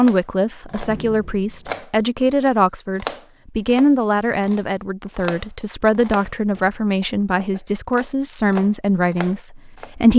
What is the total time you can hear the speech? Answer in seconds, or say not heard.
10 s.